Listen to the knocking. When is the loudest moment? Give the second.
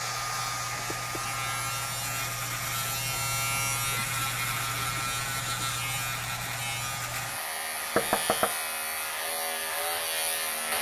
8 s.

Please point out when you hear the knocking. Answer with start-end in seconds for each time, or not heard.
0.9-1.5, 8.0-8.6.